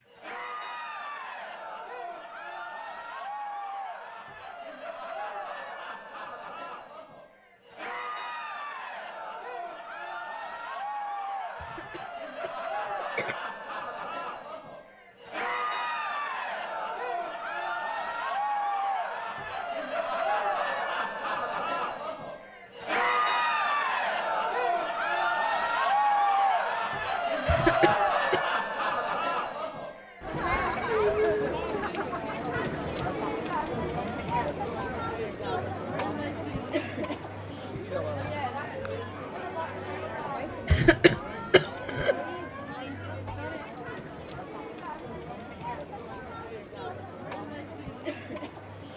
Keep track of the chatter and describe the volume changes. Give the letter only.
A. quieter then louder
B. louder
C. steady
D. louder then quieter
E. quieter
D.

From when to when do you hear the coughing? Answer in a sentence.
You can hear the coughing from 11.6 to 13.4 s, from 27.4 to 28.4 s and from 40.6 to 42.1 s.